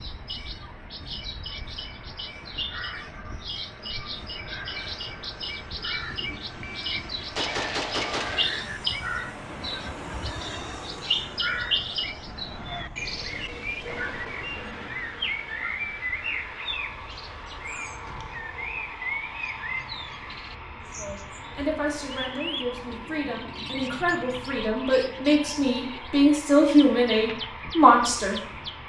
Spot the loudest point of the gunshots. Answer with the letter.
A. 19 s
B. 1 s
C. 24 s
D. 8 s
D.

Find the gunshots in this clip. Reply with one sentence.
You can hear the gunshots from 6.6 to 8.6 s and from 18.1 to 18.5 s.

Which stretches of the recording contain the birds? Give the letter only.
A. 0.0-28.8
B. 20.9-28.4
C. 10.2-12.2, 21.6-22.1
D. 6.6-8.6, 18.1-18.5
A.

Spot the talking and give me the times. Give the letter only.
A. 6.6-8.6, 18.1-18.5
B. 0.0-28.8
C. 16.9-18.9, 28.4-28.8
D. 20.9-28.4
D.